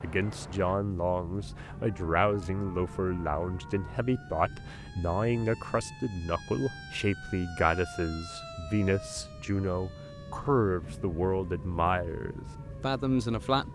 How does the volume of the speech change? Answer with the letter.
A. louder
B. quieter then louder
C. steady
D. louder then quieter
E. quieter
C.